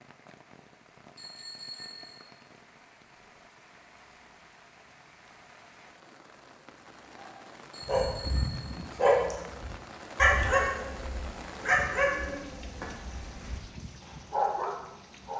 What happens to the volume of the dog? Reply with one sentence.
The volume of the dog goes down, then up.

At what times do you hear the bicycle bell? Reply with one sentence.
The bicycle bell can be heard from 1.1 to 2.3 s and from 7.7 to 8.8 s.